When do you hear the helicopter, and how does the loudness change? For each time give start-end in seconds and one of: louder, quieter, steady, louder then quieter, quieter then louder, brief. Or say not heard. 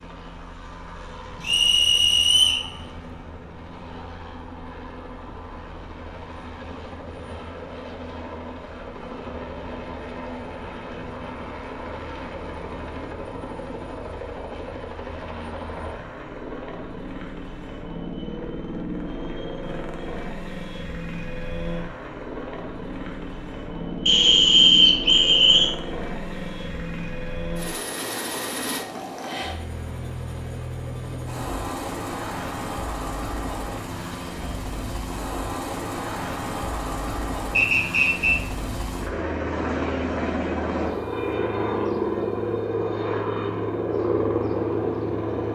0.0-45.5 louder.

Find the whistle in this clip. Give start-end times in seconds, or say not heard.
1.4-2.6, 24.1-25.7, 37.5-38.4.